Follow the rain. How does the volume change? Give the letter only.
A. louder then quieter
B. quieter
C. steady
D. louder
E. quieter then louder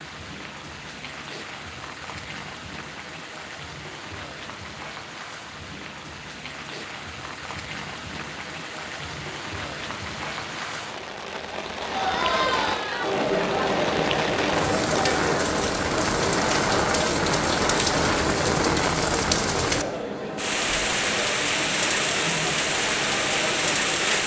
D.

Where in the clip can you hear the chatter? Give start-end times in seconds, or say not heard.
11.8-24.2.